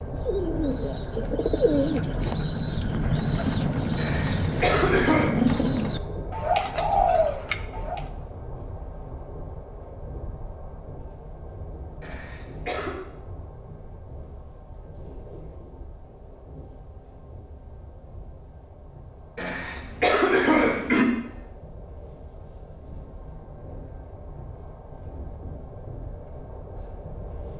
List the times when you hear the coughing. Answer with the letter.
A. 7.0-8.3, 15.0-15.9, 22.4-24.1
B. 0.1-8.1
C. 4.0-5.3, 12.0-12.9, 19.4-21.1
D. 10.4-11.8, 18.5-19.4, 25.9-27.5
C.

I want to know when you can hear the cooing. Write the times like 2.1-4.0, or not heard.
0.1-8.1.